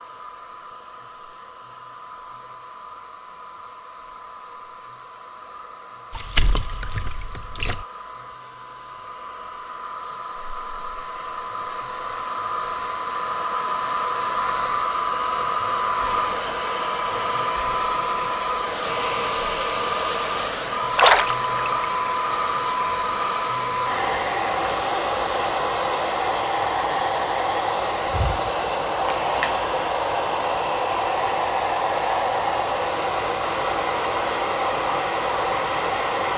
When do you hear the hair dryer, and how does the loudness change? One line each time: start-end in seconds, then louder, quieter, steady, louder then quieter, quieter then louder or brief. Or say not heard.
0.0-36.3 louder.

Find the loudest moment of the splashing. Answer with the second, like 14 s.
21 s.